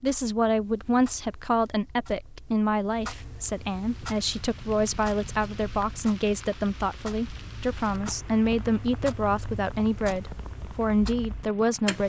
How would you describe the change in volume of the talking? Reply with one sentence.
The volume of the talking stays about the same.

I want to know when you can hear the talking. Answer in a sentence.
The talking can be heard from 0.0 to 12.0 s.